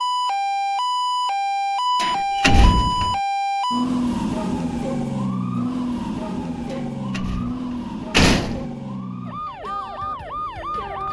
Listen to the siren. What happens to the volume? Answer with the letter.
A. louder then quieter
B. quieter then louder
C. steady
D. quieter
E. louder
D.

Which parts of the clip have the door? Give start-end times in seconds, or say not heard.
1.9-3.1, 7.2-8.7.